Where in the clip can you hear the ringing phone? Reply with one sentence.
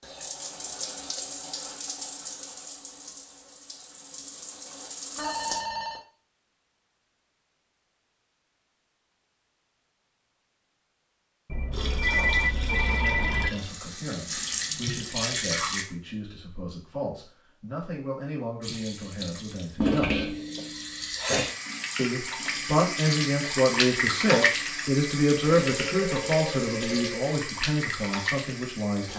The ringing phone can be heard from 5.2 to 6.0 s, from 11.4 to 13.5 s and from 25.6 to 27.2 s.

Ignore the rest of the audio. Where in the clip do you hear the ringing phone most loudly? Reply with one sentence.
The loudest moment of the ringing phone is at 12 seconds.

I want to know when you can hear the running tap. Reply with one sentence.
You can hear the running tap from 0.0 to 5.6 s, from 11.7 to 15.8 s and from 18.6 to 29.1 s.